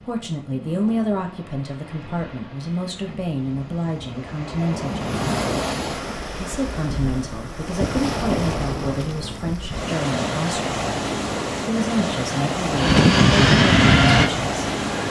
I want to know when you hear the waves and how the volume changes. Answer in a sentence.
You can hear the waves from 0.0 to 15.0 s, getting louder.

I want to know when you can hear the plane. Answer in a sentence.
You can hear the plane from 12.7 to 15.0 s.